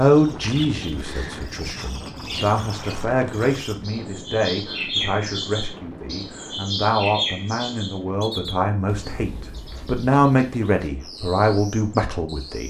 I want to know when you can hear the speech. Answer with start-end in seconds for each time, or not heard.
0.0-12.6.